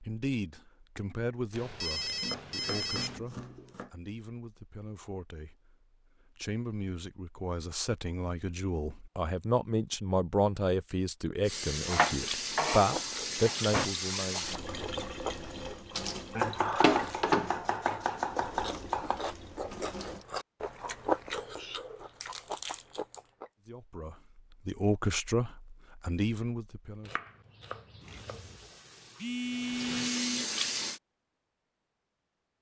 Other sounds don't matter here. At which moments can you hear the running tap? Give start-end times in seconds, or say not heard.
11.4-20.2, 28.0-31.0.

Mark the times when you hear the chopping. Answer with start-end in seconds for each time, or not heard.
2.2-3.9, 11.8-13.9, 16.4-19.2, 27.1-28.6.